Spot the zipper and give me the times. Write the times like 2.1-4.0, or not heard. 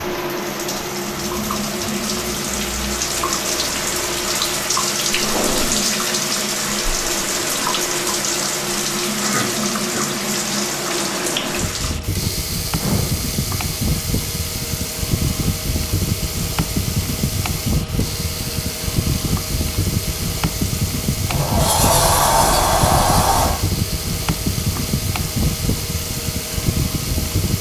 not heard.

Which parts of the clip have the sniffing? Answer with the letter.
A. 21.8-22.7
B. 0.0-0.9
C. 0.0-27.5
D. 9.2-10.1
D.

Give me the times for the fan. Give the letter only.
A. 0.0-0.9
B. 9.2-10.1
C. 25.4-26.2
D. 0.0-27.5
D.